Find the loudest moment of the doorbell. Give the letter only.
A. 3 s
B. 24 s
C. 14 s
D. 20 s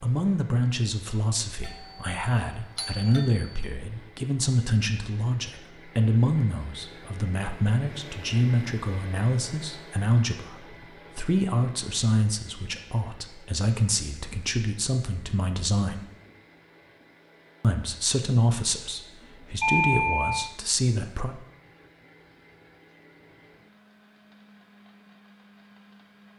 D.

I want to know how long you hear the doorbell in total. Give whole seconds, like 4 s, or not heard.
3 s.